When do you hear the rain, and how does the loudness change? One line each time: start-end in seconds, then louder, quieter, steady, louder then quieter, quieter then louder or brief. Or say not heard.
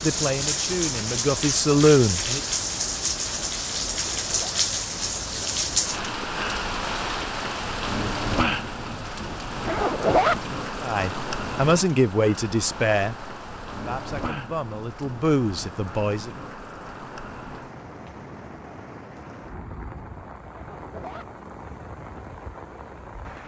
0.0-23.4 quieter.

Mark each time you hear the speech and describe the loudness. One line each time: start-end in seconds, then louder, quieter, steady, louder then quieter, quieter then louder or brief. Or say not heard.
0.0-2.4 brief
10.8-16.3 quieter then louder.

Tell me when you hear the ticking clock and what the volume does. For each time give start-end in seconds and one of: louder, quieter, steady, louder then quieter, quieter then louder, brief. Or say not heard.
not heard.